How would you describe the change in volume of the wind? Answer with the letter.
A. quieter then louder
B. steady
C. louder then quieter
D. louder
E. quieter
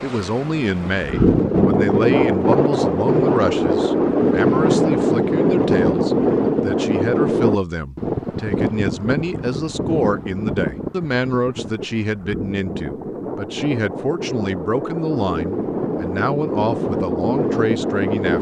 A.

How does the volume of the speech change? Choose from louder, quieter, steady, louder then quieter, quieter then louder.
steady.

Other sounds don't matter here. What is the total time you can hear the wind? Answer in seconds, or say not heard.
18 s.